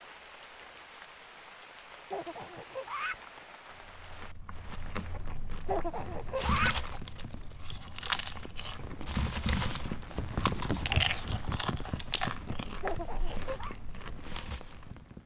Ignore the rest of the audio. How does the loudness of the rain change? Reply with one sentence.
The loudness of the rain goes up, then down.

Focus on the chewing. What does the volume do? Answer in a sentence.
The volume of the chewing goes up, then down.